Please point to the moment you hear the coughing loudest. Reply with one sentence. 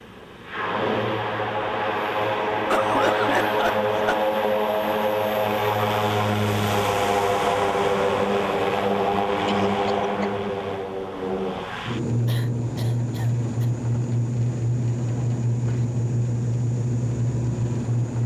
The volume of the coughing peaks at 3 seconds.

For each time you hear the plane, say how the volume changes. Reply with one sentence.
The plane can be heard from 0.0 to 18.2 s, at a steady volume.